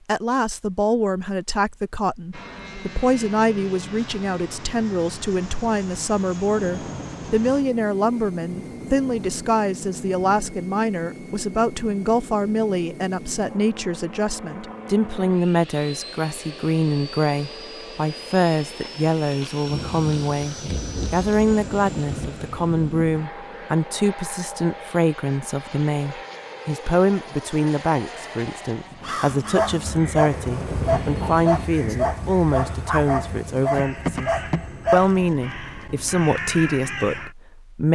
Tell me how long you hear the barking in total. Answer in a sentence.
The barking can be heard for 6 seconds in total.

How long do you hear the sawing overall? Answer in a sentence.
The sawing can't be heard in this clip.